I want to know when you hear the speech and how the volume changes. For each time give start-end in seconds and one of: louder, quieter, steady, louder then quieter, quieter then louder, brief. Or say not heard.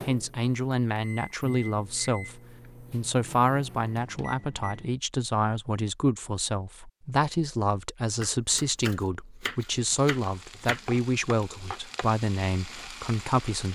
0.1-13.6 steady.